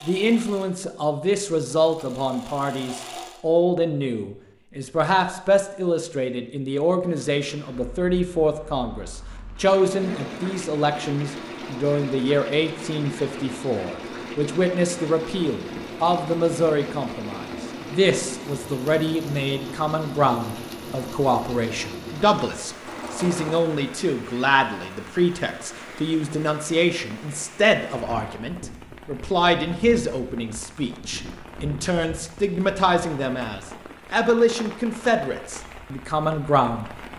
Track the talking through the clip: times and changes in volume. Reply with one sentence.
The talking can be heard from 0.0 to 36.9 s, at a steady volume.